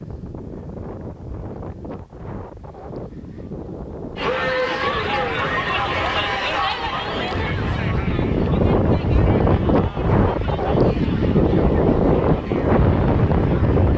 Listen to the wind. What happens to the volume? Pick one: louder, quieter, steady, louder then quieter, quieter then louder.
louder.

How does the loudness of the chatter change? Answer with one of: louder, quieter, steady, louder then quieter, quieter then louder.
quieter.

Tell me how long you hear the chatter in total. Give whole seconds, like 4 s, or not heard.
10 s.